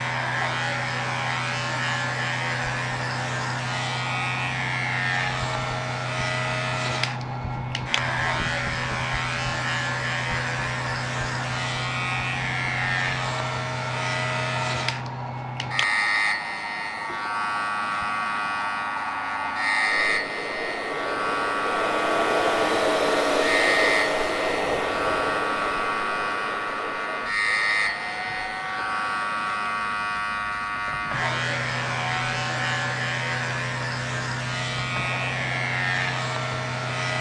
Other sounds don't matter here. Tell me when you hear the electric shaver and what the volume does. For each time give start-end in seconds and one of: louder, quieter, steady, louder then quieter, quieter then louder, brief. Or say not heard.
0.0-37.1 steady.